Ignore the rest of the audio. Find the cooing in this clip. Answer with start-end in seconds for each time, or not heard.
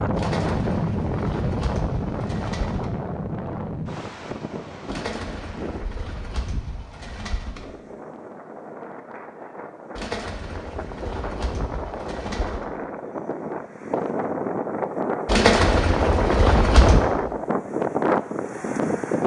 0.1-2.9, 4.8-7.7, 9.9-12.7, 15.2-17.0.